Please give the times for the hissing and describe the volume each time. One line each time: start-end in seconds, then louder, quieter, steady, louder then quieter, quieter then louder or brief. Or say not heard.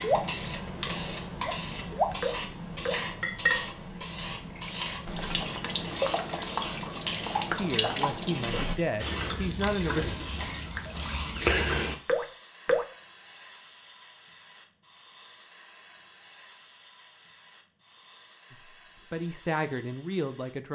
0.0-20.6 quieter.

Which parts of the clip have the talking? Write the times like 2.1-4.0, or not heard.
7.5-10.1, 18.5-20.7.